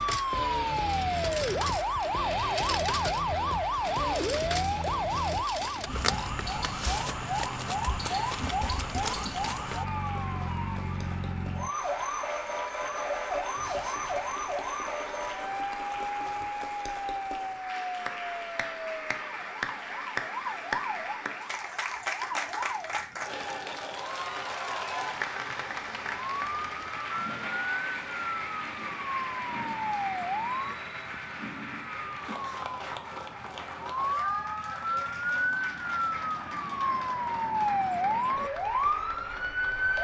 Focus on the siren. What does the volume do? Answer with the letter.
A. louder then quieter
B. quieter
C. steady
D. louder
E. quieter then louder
E.